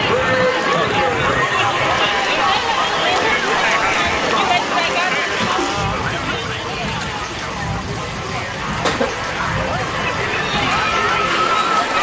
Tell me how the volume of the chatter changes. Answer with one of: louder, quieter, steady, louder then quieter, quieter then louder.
quieter then louder.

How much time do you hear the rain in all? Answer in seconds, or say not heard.
12 s.